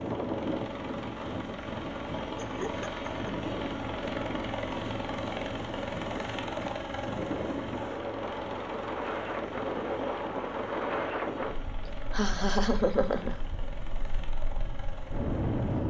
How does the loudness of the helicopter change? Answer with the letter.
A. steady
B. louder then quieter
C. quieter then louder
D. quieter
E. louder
D.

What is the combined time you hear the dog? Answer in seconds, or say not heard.
not heard.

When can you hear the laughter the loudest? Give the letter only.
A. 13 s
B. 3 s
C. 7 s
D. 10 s
A.